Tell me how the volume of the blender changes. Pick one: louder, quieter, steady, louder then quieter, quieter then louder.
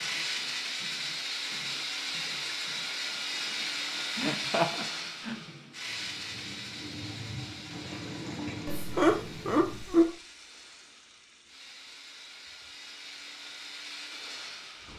quieter then louder.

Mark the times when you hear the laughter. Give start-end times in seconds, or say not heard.
4.2-5.3, 8.7-10.2.